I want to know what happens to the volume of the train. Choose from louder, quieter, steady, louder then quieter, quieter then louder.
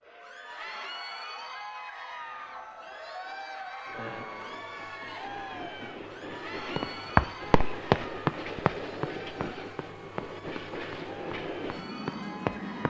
louder.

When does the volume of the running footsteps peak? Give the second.
7 s.